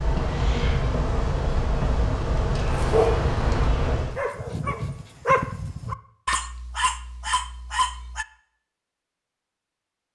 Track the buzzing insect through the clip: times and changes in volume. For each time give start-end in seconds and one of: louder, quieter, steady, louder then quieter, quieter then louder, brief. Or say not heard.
0.0-4.2 steady.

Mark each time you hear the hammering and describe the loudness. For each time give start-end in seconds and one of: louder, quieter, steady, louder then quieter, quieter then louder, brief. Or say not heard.
not heard.